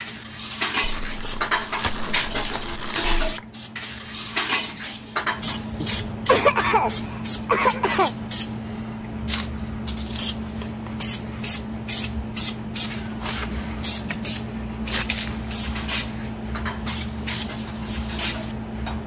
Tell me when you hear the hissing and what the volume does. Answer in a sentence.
You can hear the hissing from 0.0 to 19.0 s, getting louder.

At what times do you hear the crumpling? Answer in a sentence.
The crumpling can be heard from 0.8 to 3.4 s, from 9.2 to 10.2 s and from 14.8 to 15.2 s.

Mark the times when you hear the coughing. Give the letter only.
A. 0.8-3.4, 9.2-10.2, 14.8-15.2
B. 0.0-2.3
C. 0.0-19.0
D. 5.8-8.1
D.